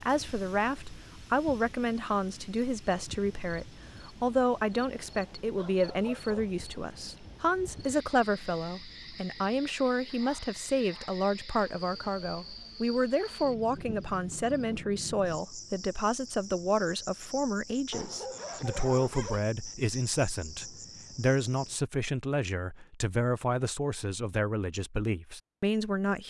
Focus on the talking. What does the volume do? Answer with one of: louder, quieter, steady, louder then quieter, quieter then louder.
steady.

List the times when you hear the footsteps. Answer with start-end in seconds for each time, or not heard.
not heard.